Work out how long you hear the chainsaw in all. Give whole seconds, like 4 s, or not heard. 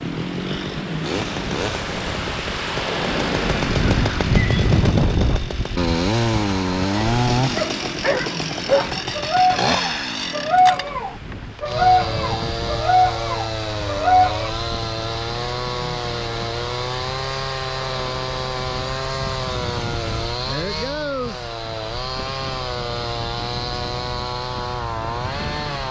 26 s.